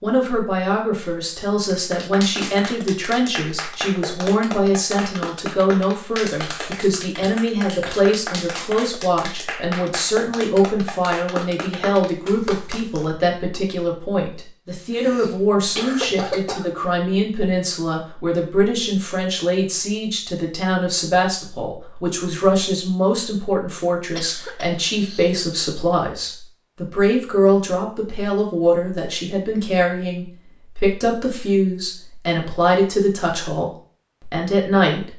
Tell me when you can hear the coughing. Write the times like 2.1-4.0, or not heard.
6.6-8.1, 14.9-16.7, 24.1-25.4.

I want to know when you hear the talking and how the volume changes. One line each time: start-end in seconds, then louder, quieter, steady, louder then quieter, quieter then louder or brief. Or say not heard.
0.0-35.1 steady.